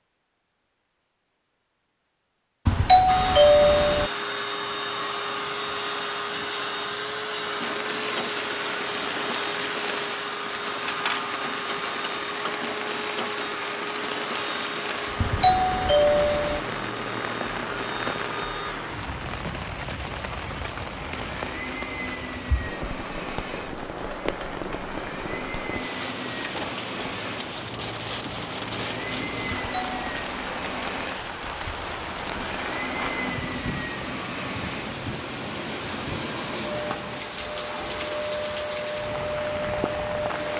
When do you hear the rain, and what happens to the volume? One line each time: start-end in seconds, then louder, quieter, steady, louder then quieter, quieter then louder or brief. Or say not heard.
7.3-40.5 steady.